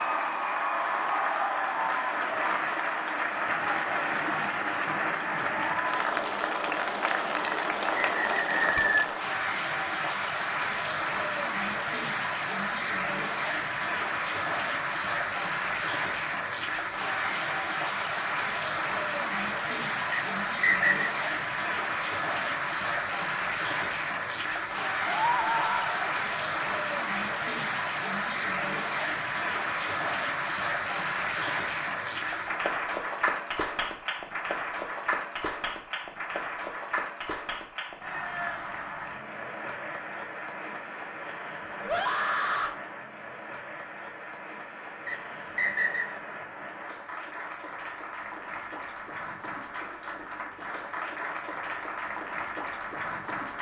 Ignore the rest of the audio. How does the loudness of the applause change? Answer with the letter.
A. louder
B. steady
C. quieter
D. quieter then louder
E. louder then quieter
C.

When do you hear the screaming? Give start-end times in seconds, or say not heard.
25.1-26.1, 41.8-42.8.